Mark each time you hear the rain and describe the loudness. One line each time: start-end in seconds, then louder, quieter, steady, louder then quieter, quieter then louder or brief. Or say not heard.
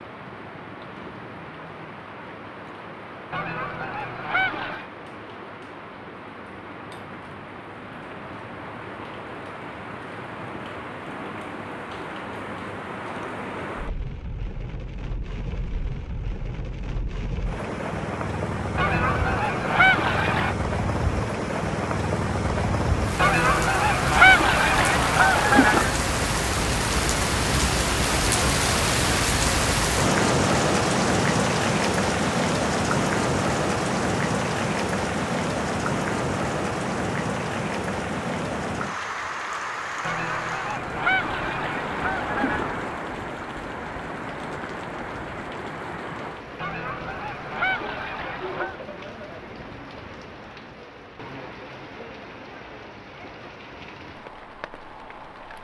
0.0-55.5 louder then quieter.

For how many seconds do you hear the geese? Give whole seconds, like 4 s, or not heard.
11 s.